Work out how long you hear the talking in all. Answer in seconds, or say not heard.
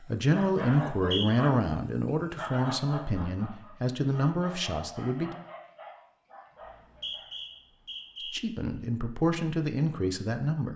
8 s.